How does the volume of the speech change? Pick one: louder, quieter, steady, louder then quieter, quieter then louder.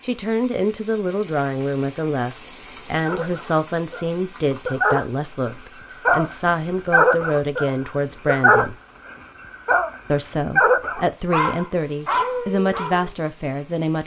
steady.